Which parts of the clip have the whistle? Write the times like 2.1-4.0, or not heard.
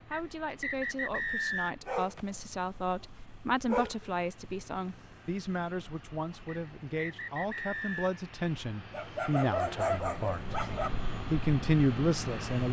0.1-1.8, 6.5-8.2.